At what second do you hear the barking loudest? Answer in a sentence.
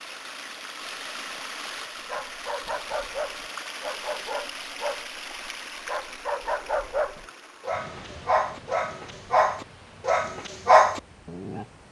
The volume of the barking peaks at 11 seconds.